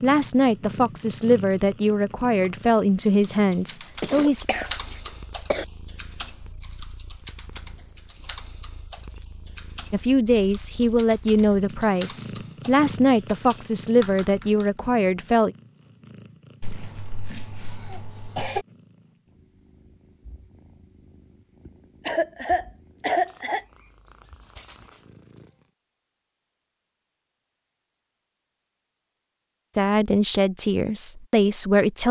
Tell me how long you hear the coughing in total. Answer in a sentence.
You can hear the coughing for 5 seconds altogether.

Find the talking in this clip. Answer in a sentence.
You can hear the talking from 0.0 to 4.5 s, from 9.9 to 15.6 s and from 29.8 to 32.0 s.